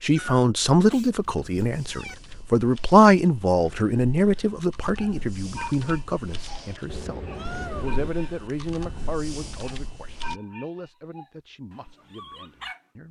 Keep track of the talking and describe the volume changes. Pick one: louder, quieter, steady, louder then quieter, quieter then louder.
quieter.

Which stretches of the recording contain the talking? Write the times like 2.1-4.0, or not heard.
0.0-13.0.